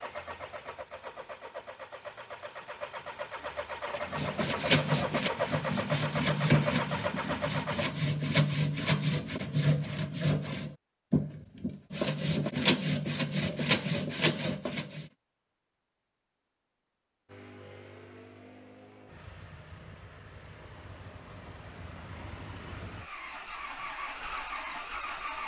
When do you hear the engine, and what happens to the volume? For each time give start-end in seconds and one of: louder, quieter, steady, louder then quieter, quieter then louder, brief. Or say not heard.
0.0-8.0 louder
17.2-25.4 louder.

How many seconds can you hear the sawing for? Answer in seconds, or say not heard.
11 s.